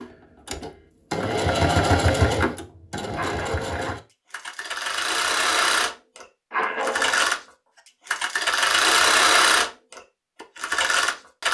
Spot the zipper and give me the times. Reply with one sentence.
The zipper can be heard from 3.1 to 4.0 s and from 6.5 to 7.3 s.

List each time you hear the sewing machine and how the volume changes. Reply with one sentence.
You can hear the sewing machine from 0.0 to 11.4 s, getting quieter then louder.